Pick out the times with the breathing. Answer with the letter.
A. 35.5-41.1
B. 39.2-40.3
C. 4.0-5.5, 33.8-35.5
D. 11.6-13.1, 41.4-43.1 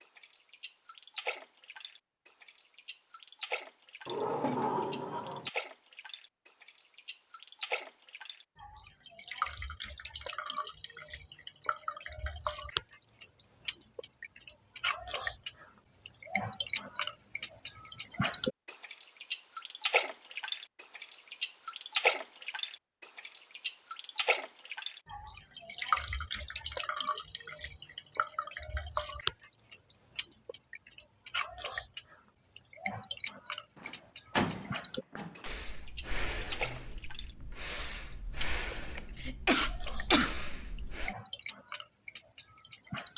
A.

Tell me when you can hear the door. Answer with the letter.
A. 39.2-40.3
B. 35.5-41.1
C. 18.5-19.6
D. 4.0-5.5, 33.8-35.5
D.